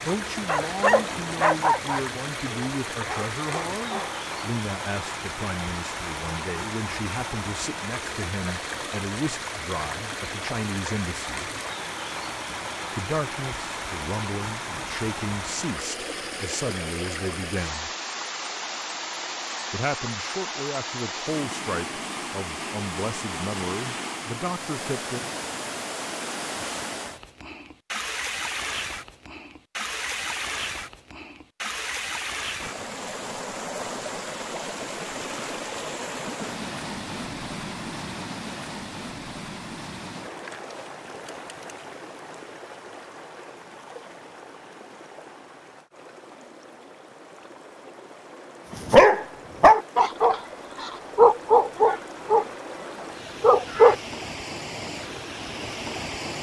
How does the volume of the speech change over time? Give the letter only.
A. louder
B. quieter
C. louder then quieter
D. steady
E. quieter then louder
D.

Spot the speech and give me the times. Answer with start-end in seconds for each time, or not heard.
0.0-11.5, 12.9-17.9, 19.7-25.2.